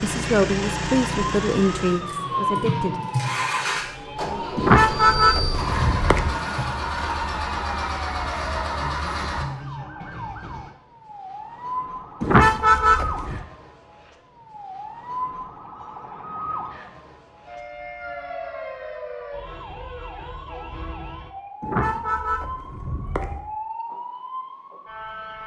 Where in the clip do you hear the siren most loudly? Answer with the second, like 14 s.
3 s.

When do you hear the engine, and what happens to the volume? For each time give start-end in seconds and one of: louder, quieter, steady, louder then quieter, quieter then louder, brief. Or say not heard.
0.0-9.4 steady.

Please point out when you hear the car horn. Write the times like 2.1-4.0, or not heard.
4.5-6.3, 12.2-13.4, 21.6-23.4.